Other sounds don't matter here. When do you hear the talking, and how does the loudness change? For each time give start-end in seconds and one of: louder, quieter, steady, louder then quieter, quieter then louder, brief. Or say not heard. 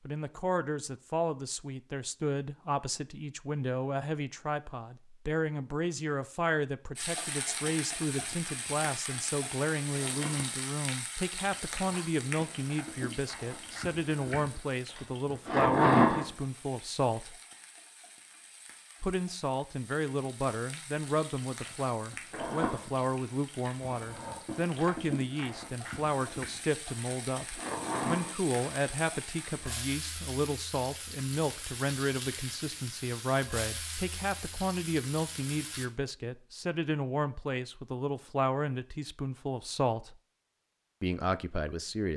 0.1-17.4 steady
19.0-40.1 steady
41.0-42.1 brief.